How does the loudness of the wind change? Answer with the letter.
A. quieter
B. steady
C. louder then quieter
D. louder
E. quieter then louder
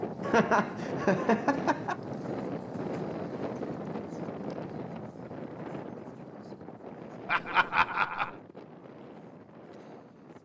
A.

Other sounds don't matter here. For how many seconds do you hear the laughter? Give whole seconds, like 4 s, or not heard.
3 s.